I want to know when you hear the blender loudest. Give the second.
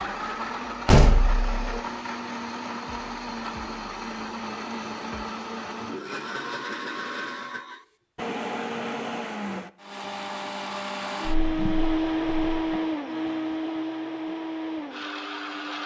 12 s.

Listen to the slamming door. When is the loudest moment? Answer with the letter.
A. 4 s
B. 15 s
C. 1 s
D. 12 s
C.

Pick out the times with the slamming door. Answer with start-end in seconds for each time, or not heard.
0.8-1.8, 11.2-12.8.